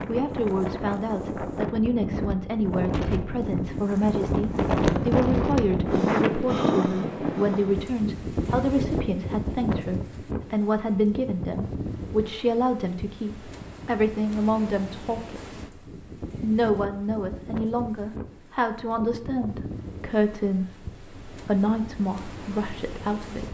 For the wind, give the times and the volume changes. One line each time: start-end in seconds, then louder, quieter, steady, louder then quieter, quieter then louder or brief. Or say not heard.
0.0-23.4 quieter.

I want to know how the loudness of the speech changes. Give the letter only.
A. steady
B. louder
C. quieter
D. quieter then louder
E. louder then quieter
A.